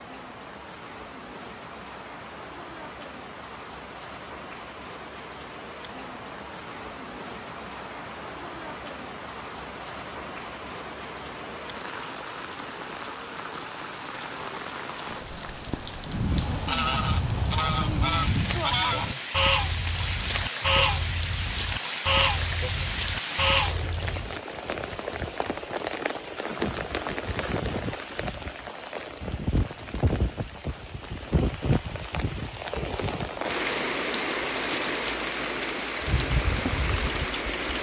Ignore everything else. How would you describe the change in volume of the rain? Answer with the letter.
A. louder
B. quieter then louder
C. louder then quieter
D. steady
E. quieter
A.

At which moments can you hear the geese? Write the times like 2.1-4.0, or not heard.
16.1-24.4.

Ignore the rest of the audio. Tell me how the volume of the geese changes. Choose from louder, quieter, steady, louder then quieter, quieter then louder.
steady.